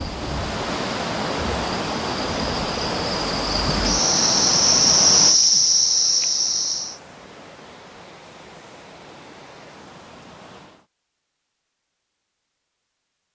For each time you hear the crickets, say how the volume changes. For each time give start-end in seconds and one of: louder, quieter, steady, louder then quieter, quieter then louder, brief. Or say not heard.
0.0-7.0 louder.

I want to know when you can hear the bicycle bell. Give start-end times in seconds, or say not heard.
not heard.